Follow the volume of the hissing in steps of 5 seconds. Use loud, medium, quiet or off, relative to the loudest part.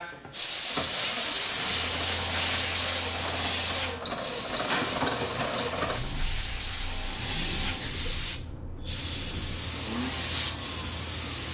loud, medium, medium.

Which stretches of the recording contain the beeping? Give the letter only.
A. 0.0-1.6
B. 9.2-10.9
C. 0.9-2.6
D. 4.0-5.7
D.